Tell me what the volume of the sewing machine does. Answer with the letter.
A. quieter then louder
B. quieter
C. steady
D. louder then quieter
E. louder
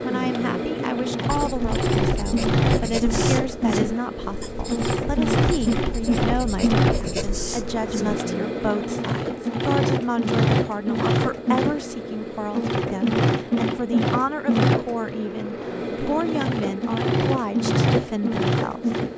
C.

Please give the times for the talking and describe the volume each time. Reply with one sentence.
You can hear the talking from 0.0 to 18.9 s, at a steady volume.